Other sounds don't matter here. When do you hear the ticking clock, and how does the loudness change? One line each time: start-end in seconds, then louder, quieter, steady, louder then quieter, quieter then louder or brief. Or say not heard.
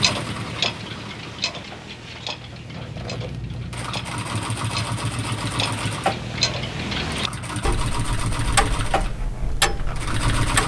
0.0-10.6 quieter then louder.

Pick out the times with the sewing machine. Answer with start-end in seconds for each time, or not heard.
0.0-10.6.